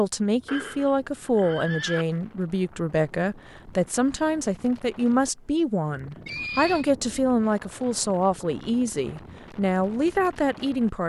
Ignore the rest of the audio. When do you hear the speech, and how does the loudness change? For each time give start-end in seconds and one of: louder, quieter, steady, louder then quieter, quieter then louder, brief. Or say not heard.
0.0-11.0 steady.